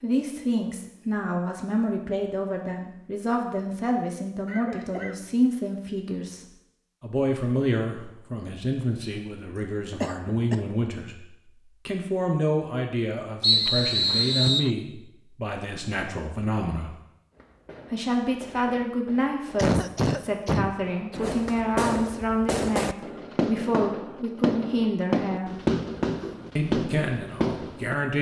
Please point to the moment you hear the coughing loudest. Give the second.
20 s.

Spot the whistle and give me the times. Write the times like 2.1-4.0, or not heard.
13.4-14.7.